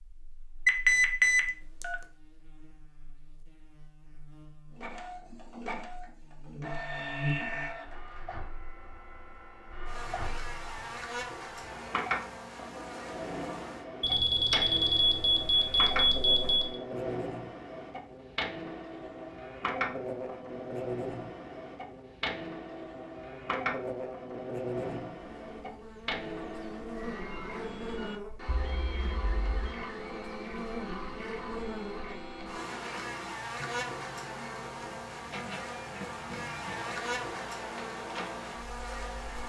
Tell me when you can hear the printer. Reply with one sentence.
The printer can be heard from 4.8 to 39.4 s.